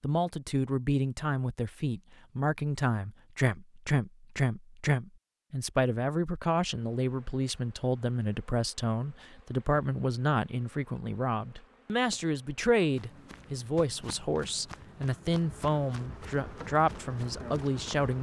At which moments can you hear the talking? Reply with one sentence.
The talking can be heard from 0.0 to 18.1 s.